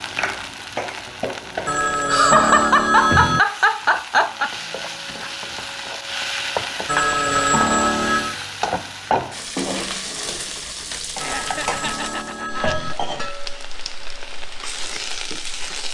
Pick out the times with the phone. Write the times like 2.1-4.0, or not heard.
1.6-3.4, 6.8-8.3, 11.2-12.9.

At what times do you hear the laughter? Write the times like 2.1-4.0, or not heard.
2.0-4.5, 11.2-12.8.